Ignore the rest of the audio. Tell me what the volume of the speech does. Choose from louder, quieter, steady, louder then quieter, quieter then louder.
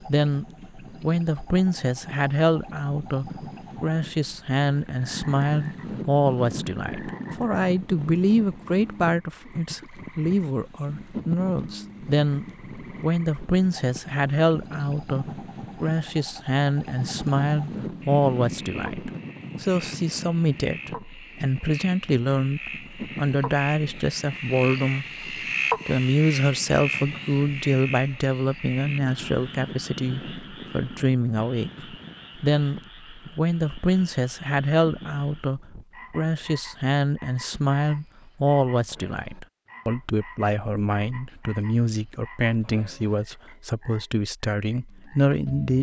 steady.